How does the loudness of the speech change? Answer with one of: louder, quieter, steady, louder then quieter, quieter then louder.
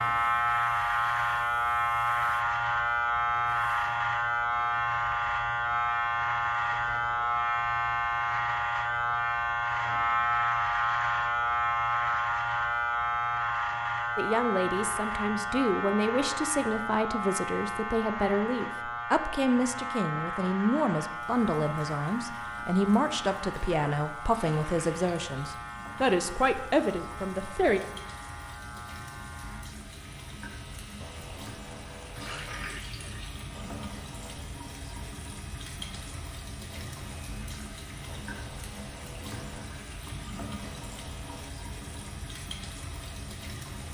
steady.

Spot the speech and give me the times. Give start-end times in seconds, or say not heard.
14.2-27.8.